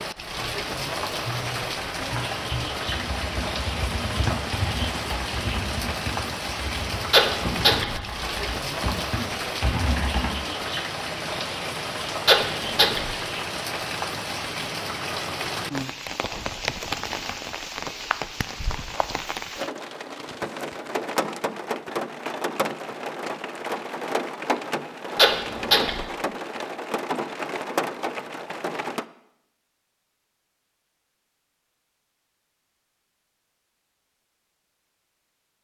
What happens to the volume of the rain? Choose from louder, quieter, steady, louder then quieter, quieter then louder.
steady.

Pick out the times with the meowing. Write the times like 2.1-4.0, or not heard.
7.1-8.0, 12.2-13.2, 25.1-26.1.